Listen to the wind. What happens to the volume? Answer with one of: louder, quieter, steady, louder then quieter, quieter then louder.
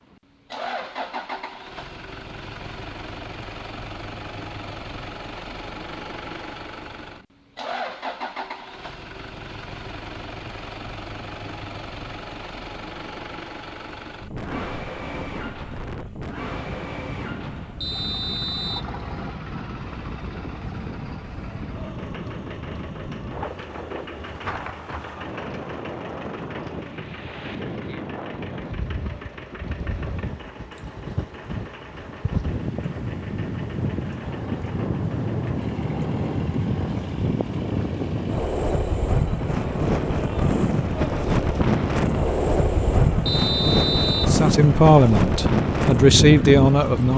louder.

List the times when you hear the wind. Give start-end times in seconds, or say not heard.
14.2-47.1.